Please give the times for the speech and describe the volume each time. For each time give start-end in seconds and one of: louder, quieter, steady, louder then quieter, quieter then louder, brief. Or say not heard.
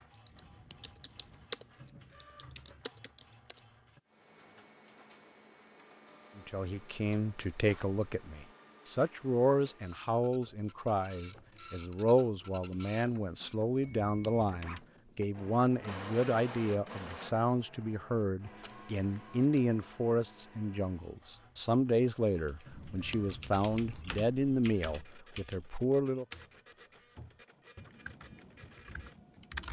6.3-26.2 steady.